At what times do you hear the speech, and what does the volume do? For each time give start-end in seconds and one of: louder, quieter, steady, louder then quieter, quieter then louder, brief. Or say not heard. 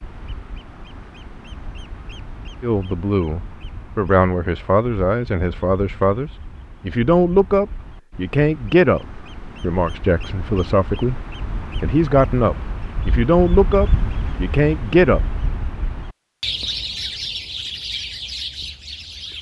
2.6-15.2 steady.